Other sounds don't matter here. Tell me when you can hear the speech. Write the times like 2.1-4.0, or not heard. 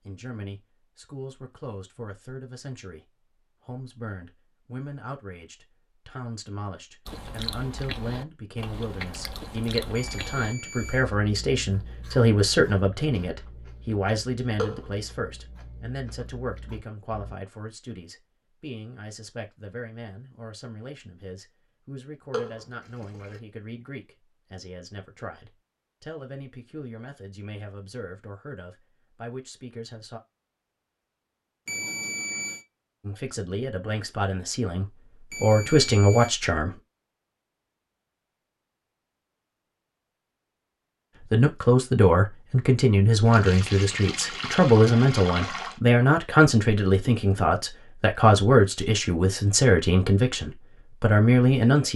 0.0-3.0, 3.6-30.2, 33.0-36.8, 41.3-51.9.